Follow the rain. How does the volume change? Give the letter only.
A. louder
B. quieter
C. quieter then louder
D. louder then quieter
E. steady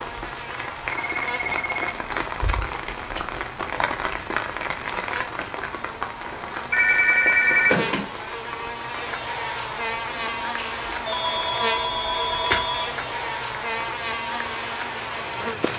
B.